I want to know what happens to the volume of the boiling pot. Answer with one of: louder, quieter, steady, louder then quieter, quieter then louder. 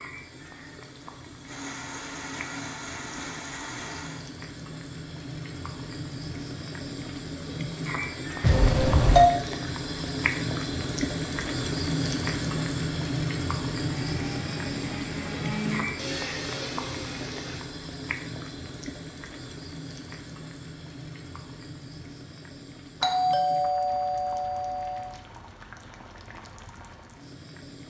louder then quieter.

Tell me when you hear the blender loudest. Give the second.
16 s.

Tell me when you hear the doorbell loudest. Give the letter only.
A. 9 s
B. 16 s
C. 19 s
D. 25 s
A.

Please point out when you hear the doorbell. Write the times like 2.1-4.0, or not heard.
8.4-9.3, 23.0-25.1.